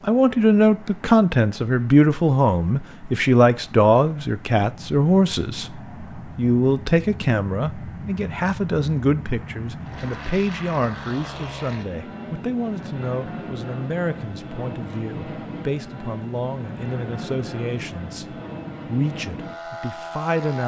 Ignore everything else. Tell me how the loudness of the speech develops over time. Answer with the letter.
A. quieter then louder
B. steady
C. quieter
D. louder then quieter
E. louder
C.